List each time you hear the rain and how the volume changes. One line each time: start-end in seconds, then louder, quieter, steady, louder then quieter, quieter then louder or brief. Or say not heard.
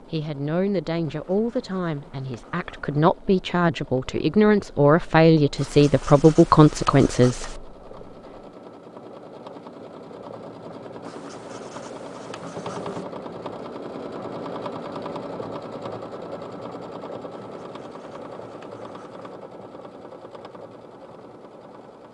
not heard.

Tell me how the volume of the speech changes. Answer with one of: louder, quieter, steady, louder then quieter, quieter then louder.
louder.